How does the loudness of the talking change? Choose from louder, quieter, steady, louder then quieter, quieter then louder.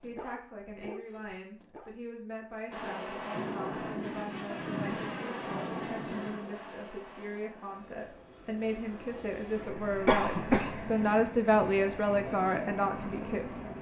louder.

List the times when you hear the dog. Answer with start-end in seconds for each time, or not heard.
0.0-1.9.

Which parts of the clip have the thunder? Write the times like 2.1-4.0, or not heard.
3.3-6.4.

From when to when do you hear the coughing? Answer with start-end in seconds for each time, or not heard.
9.7-10.9.